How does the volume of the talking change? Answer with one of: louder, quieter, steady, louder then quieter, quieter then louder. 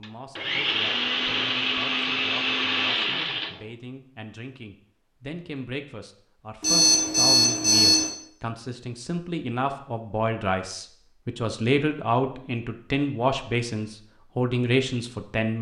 louder.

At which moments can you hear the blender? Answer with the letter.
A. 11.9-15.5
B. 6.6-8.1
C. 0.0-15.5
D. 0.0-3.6
D.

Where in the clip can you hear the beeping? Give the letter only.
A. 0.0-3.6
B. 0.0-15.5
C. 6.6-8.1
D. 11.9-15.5
C.